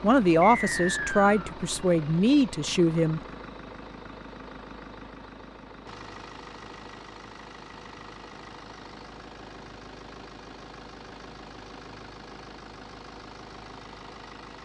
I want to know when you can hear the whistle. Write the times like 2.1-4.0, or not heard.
0.4-1.6.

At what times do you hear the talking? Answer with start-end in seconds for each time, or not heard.
0.0-3.2.